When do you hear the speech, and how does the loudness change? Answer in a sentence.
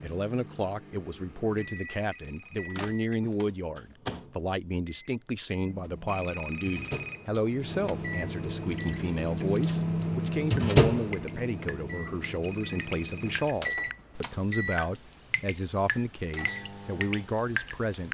You can hear the speech from 0.0 to 18.0 s, at a steady volume.